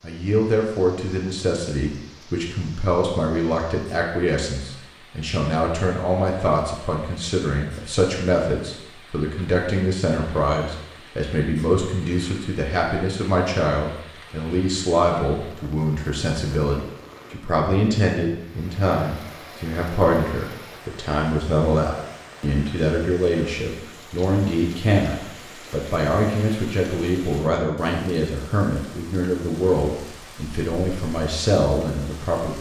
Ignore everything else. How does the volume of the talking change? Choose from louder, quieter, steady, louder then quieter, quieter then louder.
steady.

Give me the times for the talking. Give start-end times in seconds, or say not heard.
0.0-32.5.